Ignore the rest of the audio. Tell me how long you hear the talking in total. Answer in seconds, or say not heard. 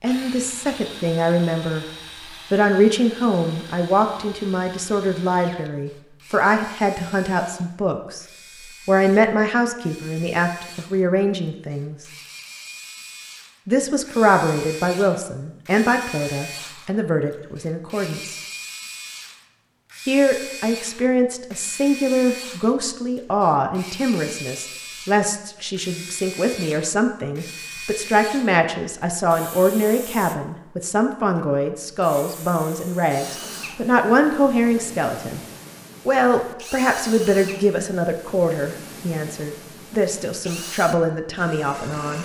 37 s.